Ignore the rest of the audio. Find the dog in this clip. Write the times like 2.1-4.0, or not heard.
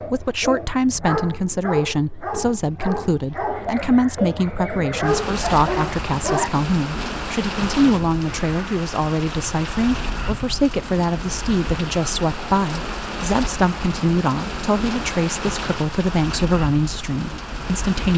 0.0-6.5.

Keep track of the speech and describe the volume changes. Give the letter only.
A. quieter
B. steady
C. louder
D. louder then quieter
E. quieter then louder
B.